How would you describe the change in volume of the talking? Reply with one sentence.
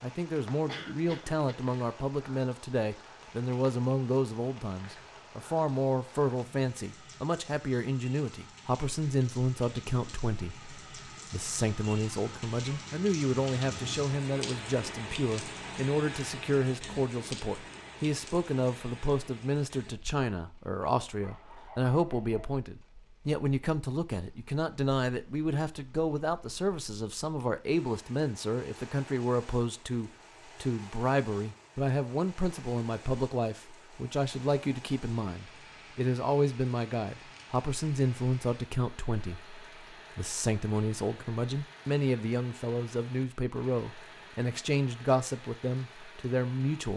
The loudness of the talking stays about the same.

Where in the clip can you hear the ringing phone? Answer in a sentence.
The ringing phone can't be heard in this clip.